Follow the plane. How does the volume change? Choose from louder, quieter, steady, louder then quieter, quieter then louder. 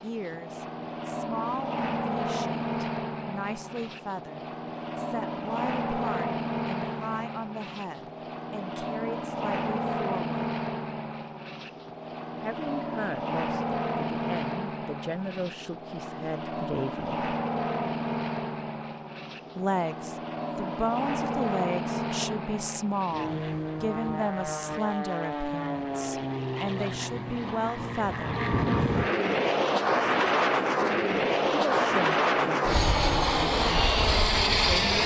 louder.